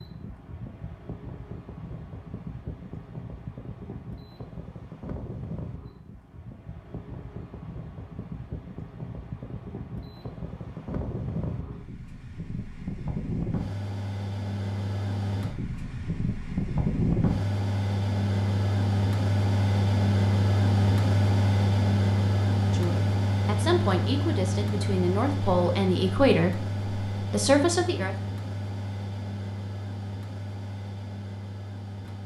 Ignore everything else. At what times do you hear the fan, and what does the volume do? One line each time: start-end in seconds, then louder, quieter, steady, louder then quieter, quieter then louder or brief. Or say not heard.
0.0-32.2 louder then quieter.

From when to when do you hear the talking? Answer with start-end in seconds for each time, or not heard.
22.6-28.1.